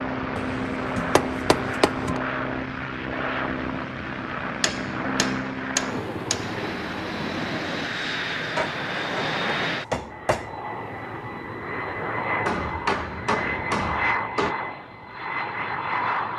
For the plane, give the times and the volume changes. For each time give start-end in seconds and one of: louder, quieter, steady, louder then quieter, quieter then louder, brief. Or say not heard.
0.0-16.3 steady.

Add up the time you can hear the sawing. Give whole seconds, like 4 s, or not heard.
not heard.